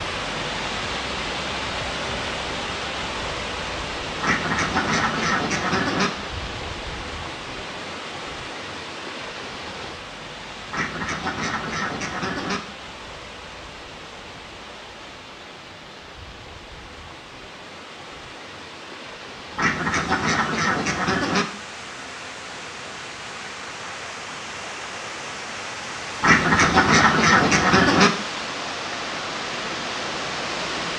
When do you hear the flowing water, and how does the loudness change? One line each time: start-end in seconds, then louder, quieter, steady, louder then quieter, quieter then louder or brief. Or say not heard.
0.0-30.9 quieter then louder.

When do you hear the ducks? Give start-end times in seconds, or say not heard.
4.2-6.1, 10.7-12.6, 19.6-21.4, 26.2-28.1.